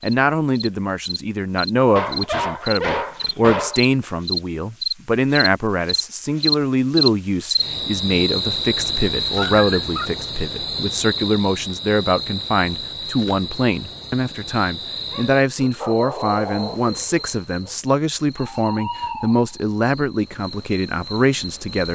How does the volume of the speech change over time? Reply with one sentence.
The loudness of the speech stays about the same.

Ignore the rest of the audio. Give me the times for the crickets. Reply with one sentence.
The crickets can be heard from 0.0 to 21.9 s.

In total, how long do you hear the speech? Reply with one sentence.
The speech can be heard for 22 seconds in total.